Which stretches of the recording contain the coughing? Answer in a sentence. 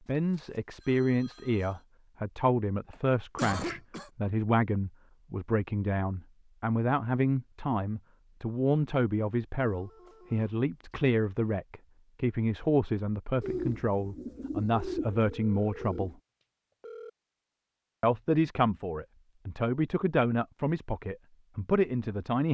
You can hear the coughing from 2.9 to 4.1 s.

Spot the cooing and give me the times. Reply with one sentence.
You can hear the cooing from 13.4 to 16.1 s.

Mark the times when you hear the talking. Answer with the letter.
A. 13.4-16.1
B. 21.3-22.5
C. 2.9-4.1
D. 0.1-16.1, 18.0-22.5
D.